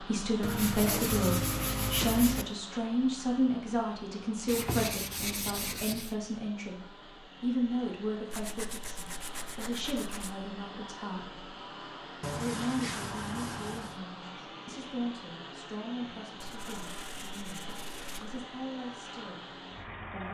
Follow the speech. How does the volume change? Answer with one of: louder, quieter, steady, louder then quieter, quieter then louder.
quieter.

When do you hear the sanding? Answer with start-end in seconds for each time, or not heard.
0.4-2.5, 4.5-6.2, 8.3-10.3, 12.2-14.0, 16.4-18.4.